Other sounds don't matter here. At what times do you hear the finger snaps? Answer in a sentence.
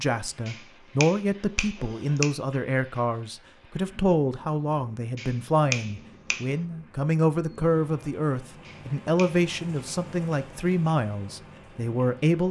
The finger snaps can be heard from 0.5 to 2.3 s, from 5.2 to 6.5 s and from 8.7 to 9.4 s.